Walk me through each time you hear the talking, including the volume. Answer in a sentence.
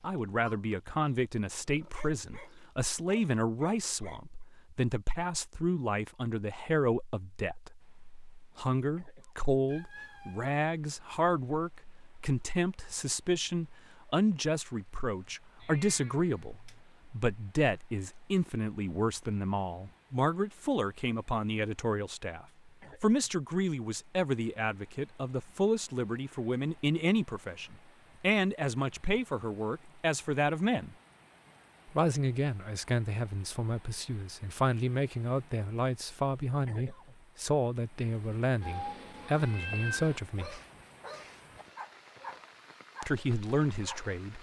You can hear the talking from 0.0 to 30.9 s, at a steady volume; from 31.9 to 40.6 s, at a steady volume; and briefly from 43.0 to 44.3 s.